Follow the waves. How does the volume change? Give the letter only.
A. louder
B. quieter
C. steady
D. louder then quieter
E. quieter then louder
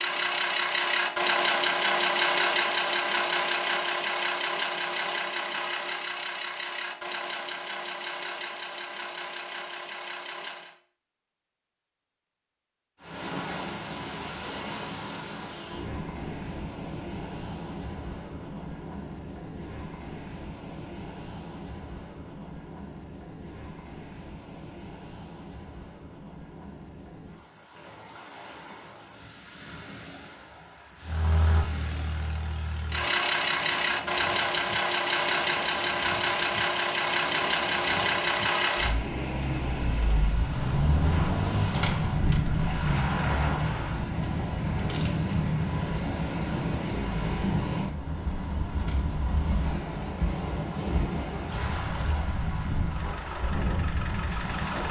E.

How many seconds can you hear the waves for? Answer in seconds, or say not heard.
42 s.